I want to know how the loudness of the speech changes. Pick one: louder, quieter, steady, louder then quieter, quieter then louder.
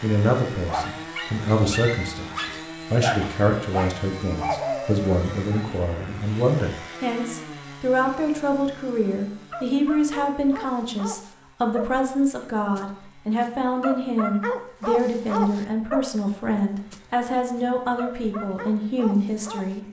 steady.